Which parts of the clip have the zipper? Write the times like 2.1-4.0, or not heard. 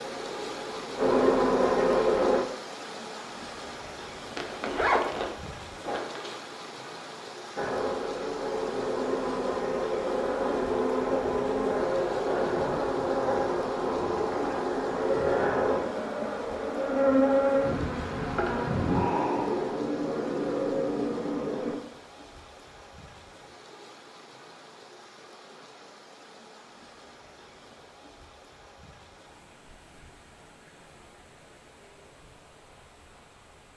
4.3-6.3.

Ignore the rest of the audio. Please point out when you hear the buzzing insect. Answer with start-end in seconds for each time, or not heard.
0.0-2.4, 7.5-21.8.